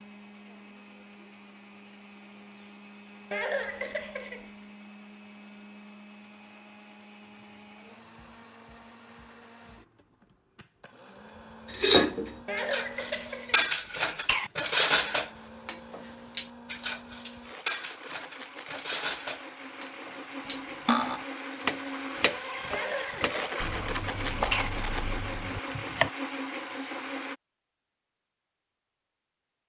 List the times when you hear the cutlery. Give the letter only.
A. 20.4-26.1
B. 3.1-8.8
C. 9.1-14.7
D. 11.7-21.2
D.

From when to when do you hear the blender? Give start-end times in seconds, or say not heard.
0.0-27.4.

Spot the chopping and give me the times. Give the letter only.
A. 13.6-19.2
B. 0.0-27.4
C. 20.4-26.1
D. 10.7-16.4
C.